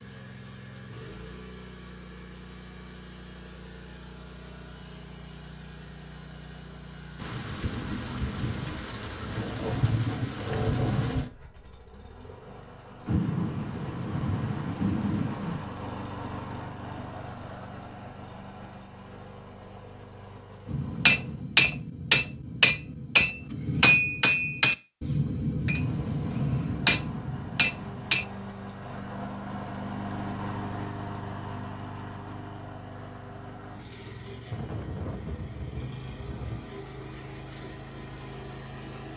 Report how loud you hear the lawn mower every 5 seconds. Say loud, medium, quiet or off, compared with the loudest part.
medium, medium, medium, loud, medium, loud, loud, loud.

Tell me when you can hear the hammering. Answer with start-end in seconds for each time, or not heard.
20.6-28.2.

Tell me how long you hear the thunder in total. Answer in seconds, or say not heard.
9 s.